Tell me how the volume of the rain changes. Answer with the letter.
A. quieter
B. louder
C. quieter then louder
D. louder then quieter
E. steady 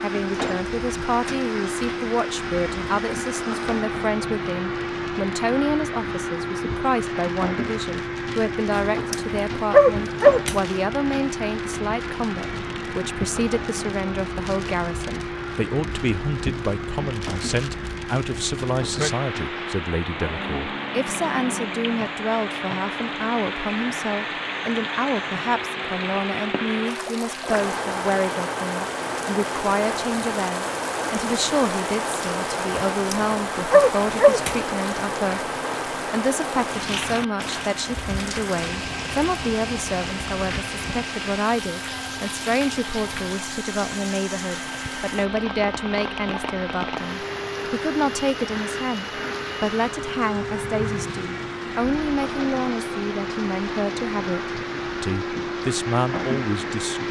D.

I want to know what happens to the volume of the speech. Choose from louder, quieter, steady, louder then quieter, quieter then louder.
steady.